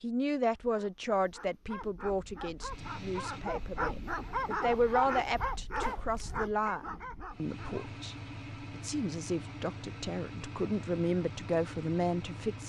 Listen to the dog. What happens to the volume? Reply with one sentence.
The loudness of the dog goes up, then down.